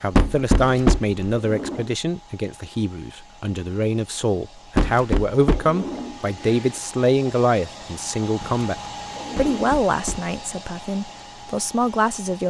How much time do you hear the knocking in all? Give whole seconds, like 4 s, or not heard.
3 s.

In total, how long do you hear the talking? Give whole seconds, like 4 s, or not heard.
12 s.